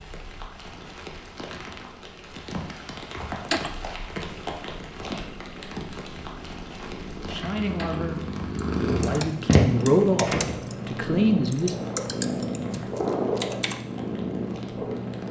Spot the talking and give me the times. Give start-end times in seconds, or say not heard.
7.2-11.8.